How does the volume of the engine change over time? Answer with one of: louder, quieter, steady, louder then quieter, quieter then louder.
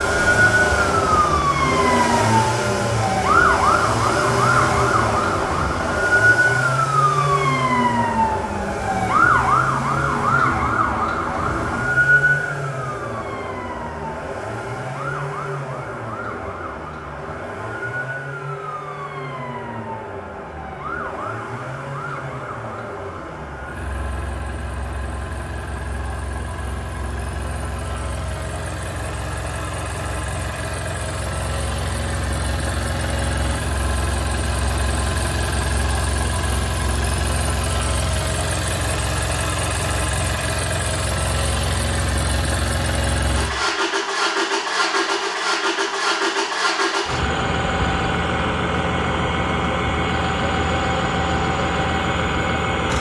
quieter then louder.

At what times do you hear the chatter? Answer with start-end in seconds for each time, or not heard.
not heard.